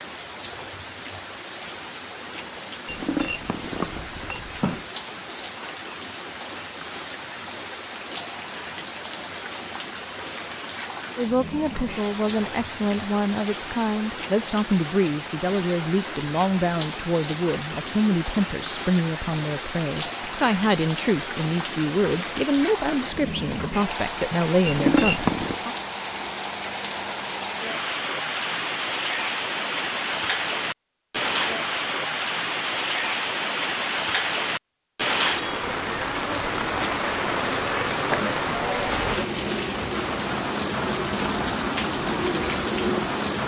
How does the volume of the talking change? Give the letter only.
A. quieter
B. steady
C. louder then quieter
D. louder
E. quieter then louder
B.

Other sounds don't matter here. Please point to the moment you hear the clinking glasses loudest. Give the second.
25 s.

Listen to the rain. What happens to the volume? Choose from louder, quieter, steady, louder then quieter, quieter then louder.
louder.